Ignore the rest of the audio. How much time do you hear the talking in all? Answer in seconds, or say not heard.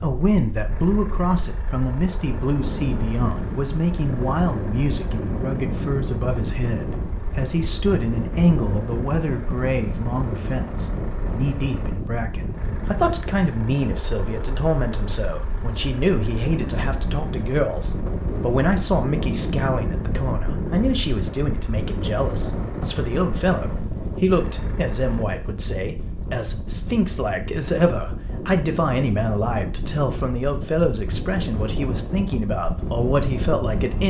34 s.